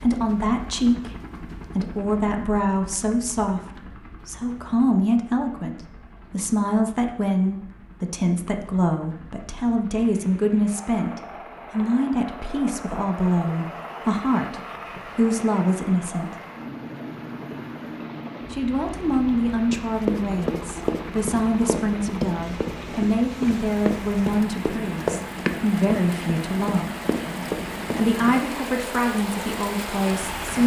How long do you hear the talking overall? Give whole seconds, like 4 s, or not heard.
27 s.